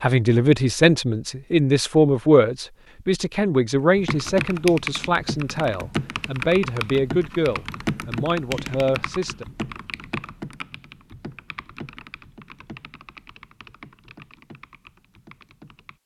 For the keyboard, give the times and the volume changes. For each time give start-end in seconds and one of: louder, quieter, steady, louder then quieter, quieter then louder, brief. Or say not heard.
4.0-16.0 quieter.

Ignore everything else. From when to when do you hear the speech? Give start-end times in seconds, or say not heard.
0.0-9.4.